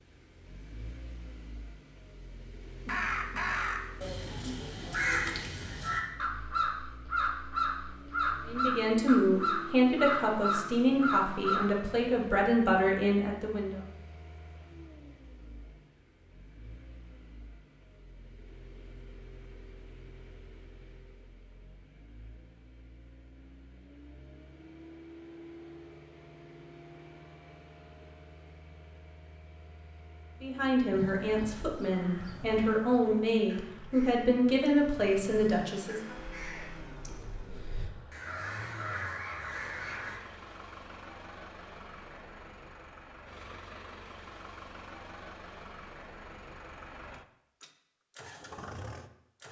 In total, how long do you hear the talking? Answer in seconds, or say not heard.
11 s.